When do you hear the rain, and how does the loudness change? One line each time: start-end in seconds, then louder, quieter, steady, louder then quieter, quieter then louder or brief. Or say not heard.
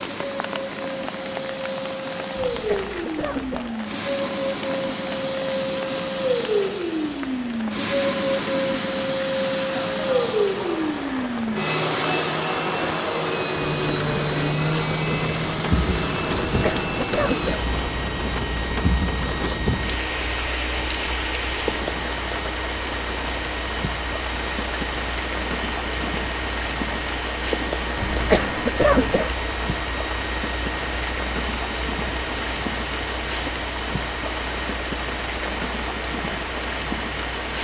0.0-37.5 louder.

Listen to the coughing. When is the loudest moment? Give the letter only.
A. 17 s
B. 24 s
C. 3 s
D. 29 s
D.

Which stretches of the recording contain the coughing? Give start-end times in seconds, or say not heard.
2.5-3.7, 16.4-17.6, 27.9-29.4.